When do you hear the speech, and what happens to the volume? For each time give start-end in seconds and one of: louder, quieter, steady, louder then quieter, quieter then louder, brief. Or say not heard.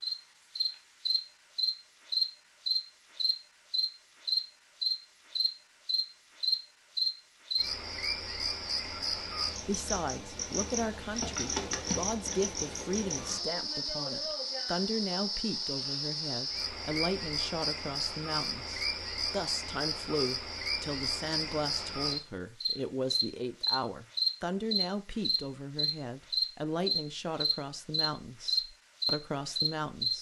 9.7-30.1 steady.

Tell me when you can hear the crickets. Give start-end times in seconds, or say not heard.
0.0-30.1.